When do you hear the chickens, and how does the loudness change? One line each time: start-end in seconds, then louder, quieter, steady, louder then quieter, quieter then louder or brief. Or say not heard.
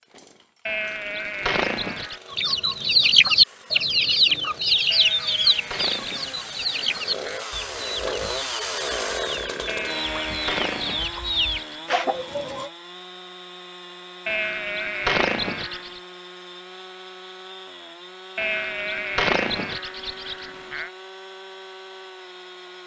2.3-12.7 quieter then louder.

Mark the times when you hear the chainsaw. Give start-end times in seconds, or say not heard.
0.0-22.8.